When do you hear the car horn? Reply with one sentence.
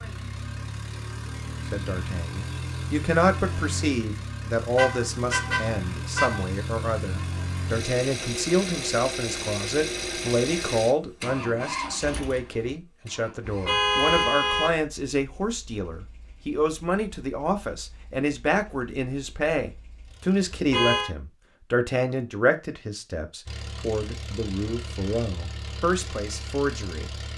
The car horn can be heard from 4.8 to 6.5 s, from 13.4 to 14.8 s and from 20.5 to 21.1 s.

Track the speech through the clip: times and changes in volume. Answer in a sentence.
The speech can be heard from 1.7 to 27.1 s, at a steady volume.